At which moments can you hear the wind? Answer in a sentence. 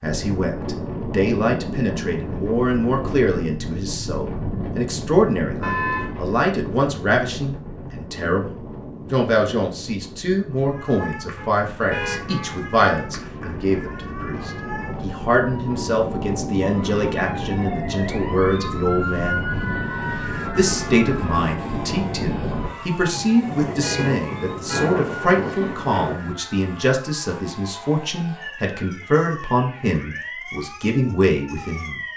The wind can be heard from 0.0 to 26.1 s.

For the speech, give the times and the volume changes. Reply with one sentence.
The speech can be heard from 0.0 to 19.4 s, at a steady volume; and from 20.6 to 32.0 s, at a steady volume.